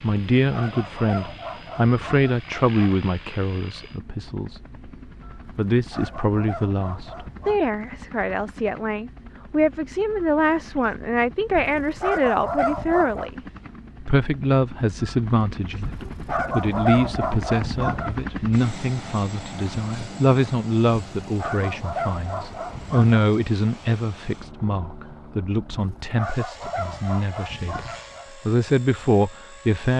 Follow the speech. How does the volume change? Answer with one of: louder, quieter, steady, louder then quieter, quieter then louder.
steady.